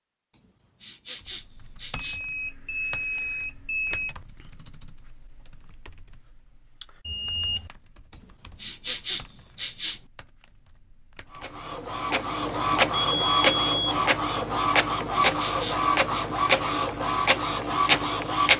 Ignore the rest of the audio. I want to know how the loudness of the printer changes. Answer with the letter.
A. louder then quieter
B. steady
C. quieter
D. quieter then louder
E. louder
B.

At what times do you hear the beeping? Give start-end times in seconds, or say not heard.
1.9-4.2, 7.0-7.7, 12.9-13.9.